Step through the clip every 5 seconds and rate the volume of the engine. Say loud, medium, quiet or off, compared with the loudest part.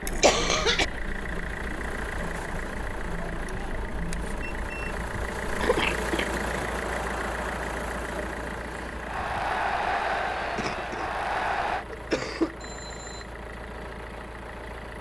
loud, loud, medium.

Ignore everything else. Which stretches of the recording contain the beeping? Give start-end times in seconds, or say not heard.
4.4-5.0, 12.6-13.3.